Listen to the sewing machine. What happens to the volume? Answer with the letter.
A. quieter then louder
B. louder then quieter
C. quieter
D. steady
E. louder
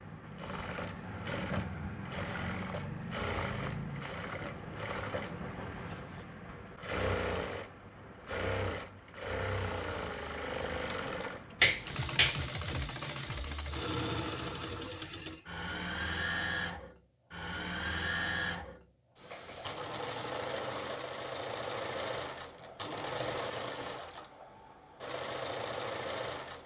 D.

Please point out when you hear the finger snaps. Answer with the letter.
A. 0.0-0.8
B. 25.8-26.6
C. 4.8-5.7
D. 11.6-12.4
D.